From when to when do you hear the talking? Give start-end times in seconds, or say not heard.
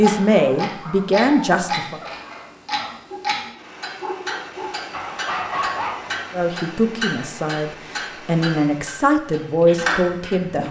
0.0-2.0, 6.3-10.6.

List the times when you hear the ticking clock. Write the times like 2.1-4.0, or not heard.
0.0-10.4.